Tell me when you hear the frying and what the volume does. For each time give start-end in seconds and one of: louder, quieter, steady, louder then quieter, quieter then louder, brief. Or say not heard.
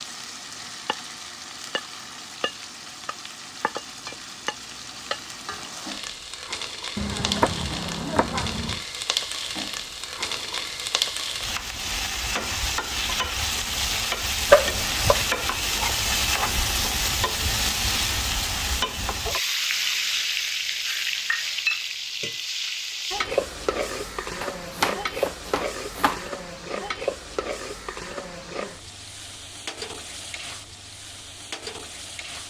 0.0-32.4 louder then quieter.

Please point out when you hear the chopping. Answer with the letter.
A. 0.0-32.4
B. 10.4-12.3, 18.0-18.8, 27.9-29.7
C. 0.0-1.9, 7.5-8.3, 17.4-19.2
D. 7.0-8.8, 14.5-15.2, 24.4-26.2
D.